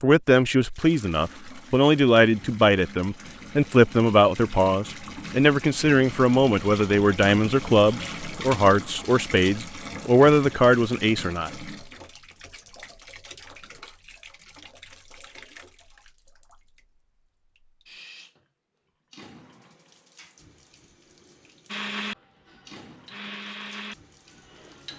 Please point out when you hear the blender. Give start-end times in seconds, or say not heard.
21.6-24.9.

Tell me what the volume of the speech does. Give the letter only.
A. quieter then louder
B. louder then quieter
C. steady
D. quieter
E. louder
C.